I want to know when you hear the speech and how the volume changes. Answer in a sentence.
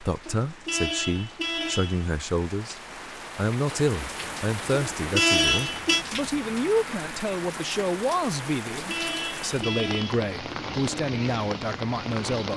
The speech can be heard from 0.0 to 12.5 s, at a steady volume.